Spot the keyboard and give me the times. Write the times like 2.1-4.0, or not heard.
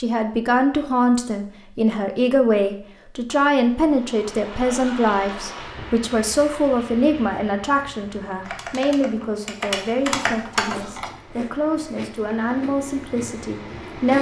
8.4-11.1.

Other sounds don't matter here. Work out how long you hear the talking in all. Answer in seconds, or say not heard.
14 s.